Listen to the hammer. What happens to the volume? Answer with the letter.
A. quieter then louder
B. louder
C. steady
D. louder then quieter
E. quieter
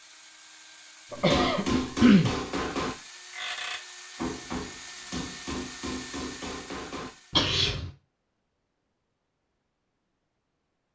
E.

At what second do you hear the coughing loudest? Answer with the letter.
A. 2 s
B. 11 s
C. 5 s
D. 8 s
A.